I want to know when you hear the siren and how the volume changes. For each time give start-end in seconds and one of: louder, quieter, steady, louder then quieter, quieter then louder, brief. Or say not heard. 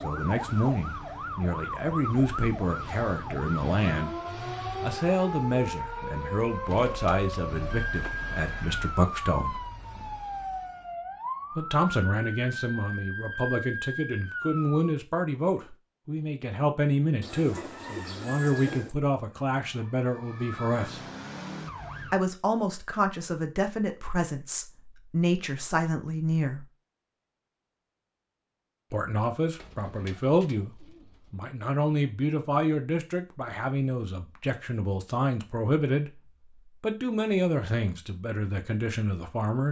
0.0-14.9 steady
19.5-22.2 brief.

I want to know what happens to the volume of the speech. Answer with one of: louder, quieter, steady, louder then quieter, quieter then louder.
steady.